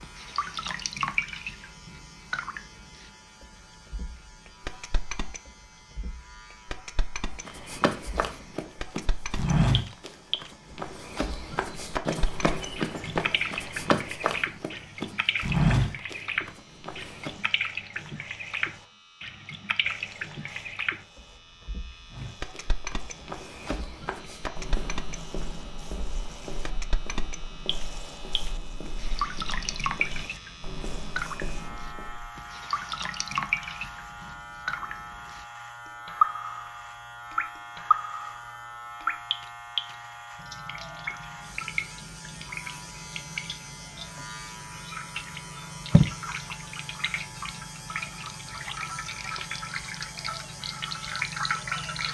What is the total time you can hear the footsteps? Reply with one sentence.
The footsteps can be heard for 20 seconds in total.